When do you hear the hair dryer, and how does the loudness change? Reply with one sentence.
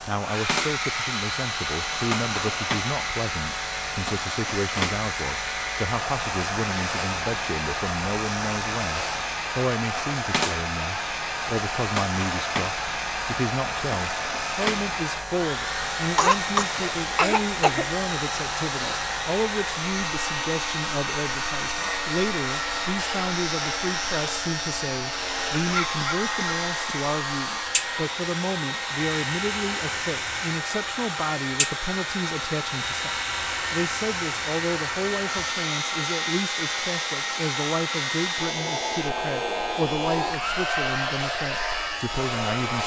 The hair dryer can be heard from 0.0 to 42.8 s, at a steady volume.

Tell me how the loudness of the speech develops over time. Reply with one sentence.
The loudness of the speech stays about the same.